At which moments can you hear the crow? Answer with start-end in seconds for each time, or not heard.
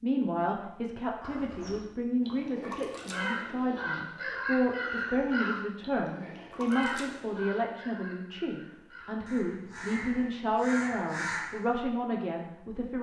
1.2-11.6.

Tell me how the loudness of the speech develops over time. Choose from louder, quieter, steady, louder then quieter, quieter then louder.
steady.